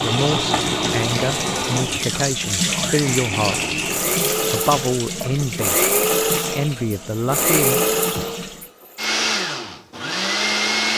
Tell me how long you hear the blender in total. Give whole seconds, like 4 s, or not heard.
11 s.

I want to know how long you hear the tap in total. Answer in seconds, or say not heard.
9 s.